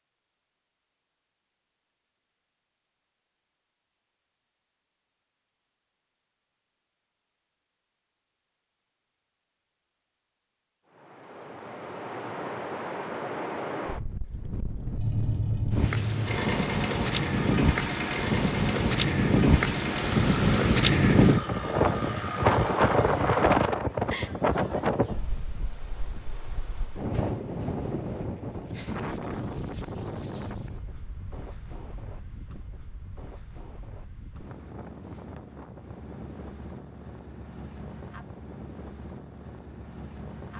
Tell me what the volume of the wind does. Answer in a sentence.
The loudness of the wind goes up, then down.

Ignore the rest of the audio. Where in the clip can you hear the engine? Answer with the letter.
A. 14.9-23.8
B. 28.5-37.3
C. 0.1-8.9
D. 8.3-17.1
A.